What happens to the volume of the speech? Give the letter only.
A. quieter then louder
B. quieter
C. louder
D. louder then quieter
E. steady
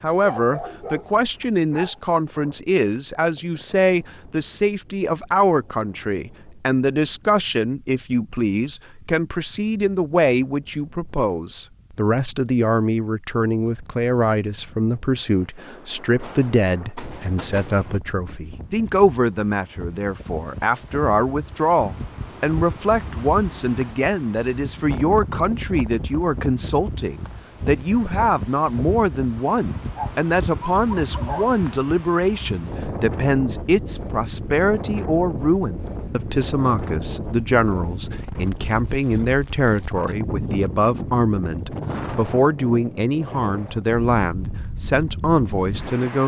E.